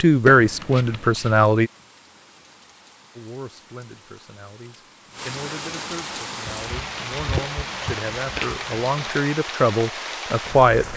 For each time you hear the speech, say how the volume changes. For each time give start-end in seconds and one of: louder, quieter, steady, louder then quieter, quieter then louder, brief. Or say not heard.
0.0-1.7 brief
3.1-10.9 louder.